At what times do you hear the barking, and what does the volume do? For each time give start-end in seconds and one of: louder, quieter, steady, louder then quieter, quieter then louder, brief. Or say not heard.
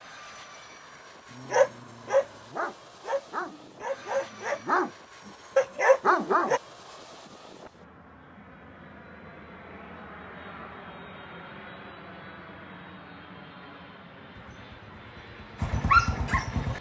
1.4-6.6 quieter then louder
14.3-16.7 brief.